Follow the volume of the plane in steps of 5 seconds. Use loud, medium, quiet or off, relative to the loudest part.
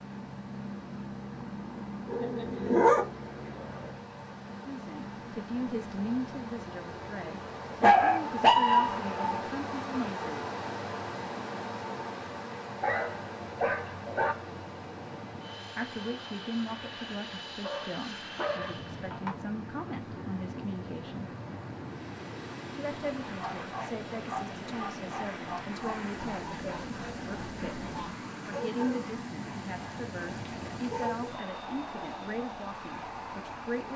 loud, medium, medium, loud, loud, loud, loud.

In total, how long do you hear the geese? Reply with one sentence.
You can hear the geese for 2 seconds altogether.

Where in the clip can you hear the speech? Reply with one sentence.
You can hear the speech from 4.7 to 10.4 s, from 15.8 to 21.3 s and from 22.7 to 33.9 s.